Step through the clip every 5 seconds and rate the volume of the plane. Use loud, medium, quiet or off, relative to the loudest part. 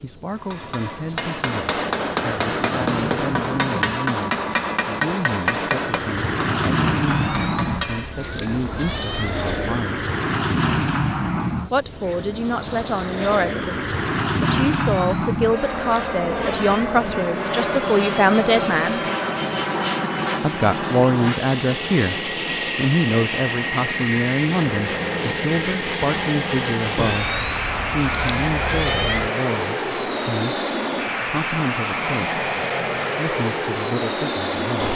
medium, loud, loud, loud, loud, loud, loud.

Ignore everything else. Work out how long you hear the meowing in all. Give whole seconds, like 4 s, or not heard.
7 s.